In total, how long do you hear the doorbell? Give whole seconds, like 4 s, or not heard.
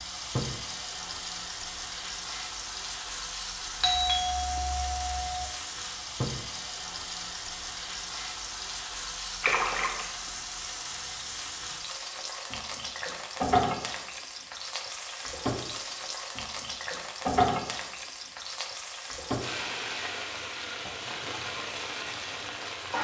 2 s.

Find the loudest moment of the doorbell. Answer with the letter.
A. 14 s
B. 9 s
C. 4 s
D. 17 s
C.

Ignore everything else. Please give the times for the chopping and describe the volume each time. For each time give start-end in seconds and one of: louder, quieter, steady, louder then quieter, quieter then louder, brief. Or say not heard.
not heard.